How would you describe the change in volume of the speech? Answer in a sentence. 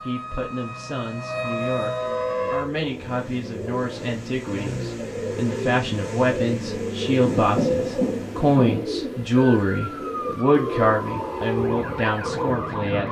The loudness of the speech goes up.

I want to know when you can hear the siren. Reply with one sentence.
You can hear the siren from 0.0 to 2.7 s and from 9.3 to 13.0 s.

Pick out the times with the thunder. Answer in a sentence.
You can hear the thunder from 7.2 to 8.8 s.